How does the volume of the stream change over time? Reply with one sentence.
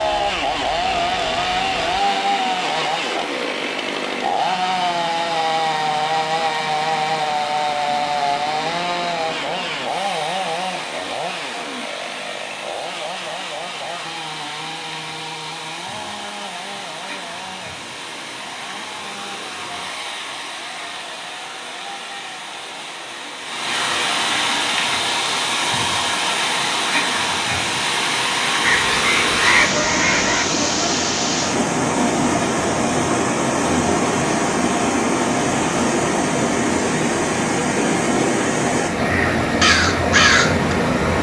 The loudness of the stream goes up.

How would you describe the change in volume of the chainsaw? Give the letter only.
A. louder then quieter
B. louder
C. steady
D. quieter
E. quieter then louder
D.